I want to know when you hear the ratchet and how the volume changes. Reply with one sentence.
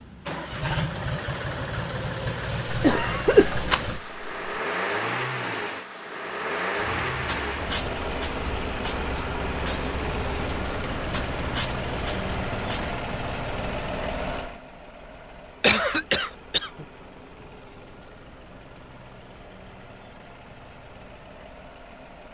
The ratchet can't be heard in this clip.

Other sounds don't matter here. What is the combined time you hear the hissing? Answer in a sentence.
You can hear the hissing for 11 seconds altogether.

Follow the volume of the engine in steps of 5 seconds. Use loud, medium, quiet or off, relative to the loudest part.
loud, loud, loud, quiet, quiet.